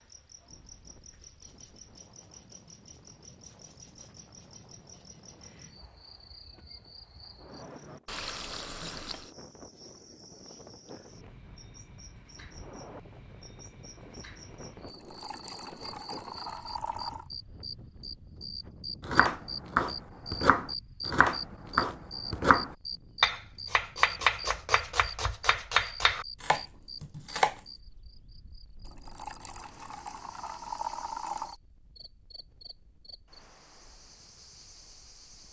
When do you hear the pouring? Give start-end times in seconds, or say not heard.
8.1-9.3, 14.8-17.3, 28.9-31.6.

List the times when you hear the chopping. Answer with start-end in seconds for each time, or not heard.
19.0-27.6.